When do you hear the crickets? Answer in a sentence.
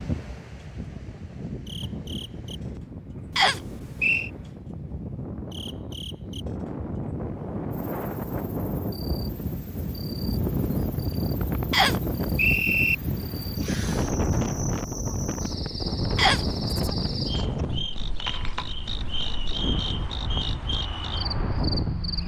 The crickets can be heard from 0.1 to 22.2 s.